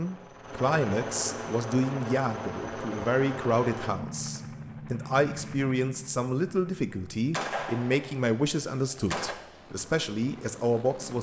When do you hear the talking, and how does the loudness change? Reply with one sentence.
The talking can be heard from 0.0 to 11.1 s, at a steady volume.